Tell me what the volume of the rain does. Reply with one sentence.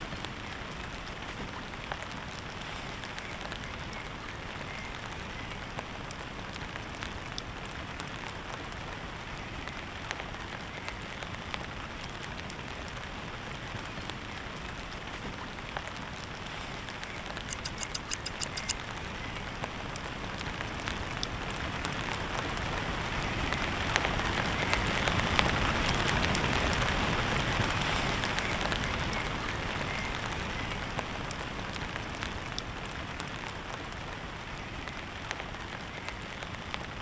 The volume of the rain goes up, then down.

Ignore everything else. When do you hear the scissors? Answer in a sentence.
You can hear the scissors from 17.4 to 18.8 s.